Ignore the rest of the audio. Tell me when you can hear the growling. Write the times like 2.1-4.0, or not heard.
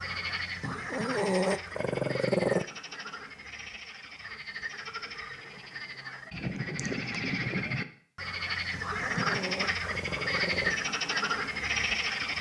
0.6-2.6, 8.7-10.8.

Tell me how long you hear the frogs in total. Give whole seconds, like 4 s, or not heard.
12 s.